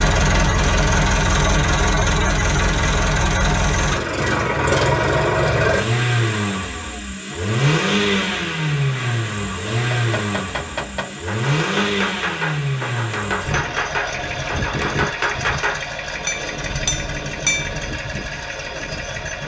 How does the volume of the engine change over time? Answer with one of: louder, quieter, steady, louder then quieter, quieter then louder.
quieter.